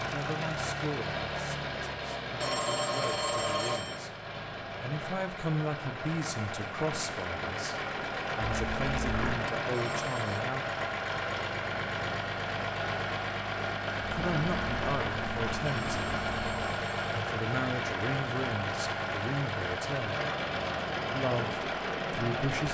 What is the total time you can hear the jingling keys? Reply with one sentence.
You can hear the jingling keys for 4 seconds altogether.